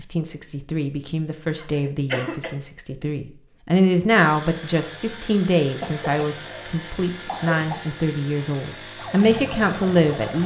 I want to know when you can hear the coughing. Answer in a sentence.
The coughing can be heard from 1.6 to 2.5 s and from 5.8 to 7.8 s.